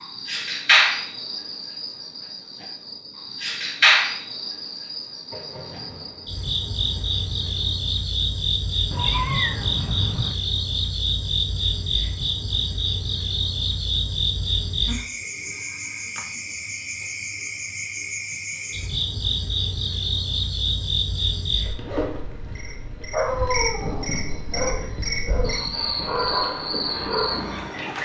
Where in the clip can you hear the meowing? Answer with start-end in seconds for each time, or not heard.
8.9-10.3.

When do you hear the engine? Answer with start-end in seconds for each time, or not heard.
26.4-27.9.